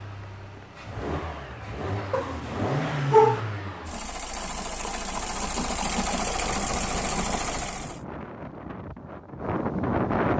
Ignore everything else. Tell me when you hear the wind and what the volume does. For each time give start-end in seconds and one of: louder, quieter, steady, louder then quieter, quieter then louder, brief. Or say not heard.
5.2-10.3 louder.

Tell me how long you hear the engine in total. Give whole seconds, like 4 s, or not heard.
8 s.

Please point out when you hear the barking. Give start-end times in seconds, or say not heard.
2.1-3.4.